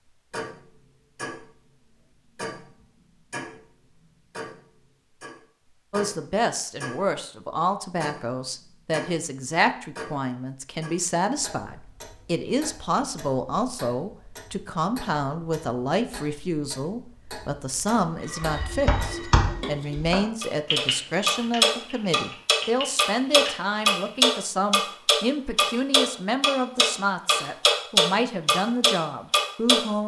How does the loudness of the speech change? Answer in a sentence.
The volume of the speech stays about the same.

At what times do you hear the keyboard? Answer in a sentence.
The keyboard can be heard from 18.4 to 24.3 s.